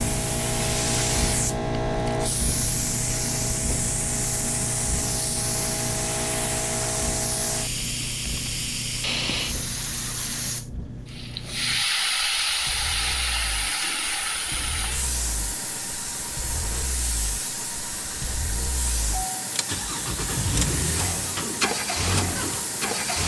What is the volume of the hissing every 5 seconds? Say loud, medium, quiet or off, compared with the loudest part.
loud, loud, loud, medium, medium.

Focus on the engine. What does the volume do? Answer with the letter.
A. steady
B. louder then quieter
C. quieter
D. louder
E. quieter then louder
E.